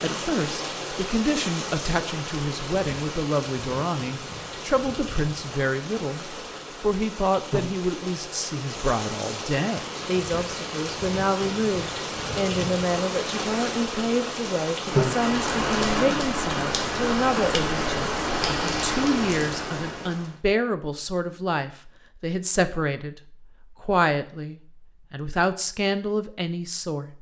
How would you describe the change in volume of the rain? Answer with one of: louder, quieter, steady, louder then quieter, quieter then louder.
louder.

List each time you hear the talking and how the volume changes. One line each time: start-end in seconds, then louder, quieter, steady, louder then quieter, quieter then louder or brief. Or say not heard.
0.0-27.1 steady.